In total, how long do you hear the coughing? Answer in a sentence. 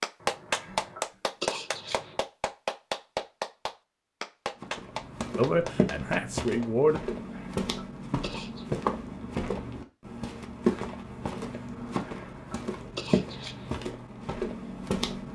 The coughing can be heard for 5 seconds in total.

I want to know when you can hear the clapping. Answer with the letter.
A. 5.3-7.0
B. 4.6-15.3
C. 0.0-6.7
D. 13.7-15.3
C.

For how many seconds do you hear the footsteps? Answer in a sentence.
The footsteps can be heard for 11 seconds in total.